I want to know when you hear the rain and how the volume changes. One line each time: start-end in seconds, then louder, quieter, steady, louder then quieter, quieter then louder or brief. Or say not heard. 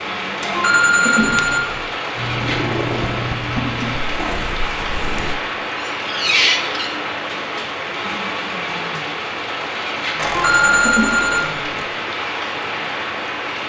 0.0-13.6 steady.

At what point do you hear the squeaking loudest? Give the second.
6 s.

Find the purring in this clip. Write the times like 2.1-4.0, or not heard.
2.1-5.4.